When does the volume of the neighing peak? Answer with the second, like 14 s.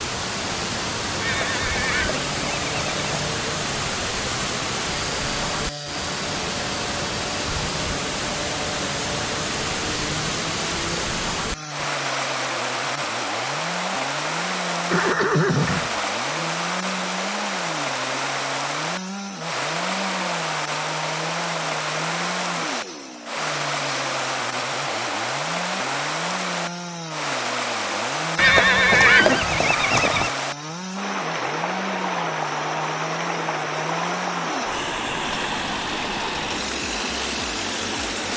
29 s.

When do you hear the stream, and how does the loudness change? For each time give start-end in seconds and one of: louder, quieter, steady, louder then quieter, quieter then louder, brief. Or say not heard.
0.0-38.3 steady.